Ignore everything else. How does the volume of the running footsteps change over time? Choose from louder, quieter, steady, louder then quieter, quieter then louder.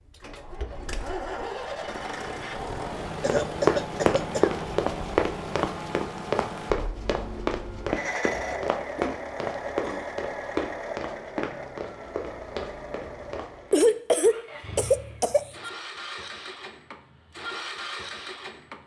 quieter.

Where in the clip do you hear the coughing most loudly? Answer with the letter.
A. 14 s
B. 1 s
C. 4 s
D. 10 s
A.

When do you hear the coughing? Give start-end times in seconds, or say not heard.
3.2-4.5, 8.9-10.1, 13.7-15.7.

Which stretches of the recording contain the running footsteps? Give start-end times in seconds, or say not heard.
3.2-13.8.